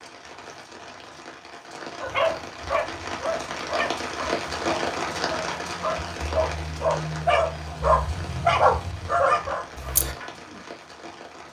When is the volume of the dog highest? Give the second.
9 s.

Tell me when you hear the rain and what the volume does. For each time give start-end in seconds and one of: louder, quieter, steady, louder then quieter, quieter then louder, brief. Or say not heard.
0.0-11.4 louder then quieter.